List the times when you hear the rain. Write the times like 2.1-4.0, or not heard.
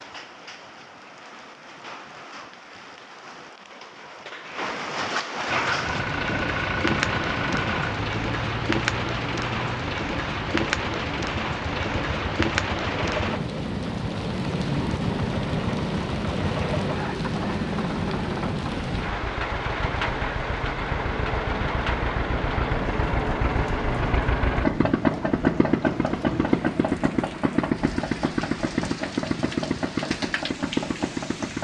0.0-31.5.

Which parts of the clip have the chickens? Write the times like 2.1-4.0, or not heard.
not heard.